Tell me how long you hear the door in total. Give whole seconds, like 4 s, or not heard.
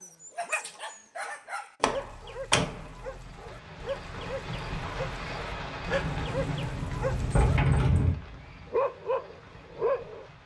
3 s.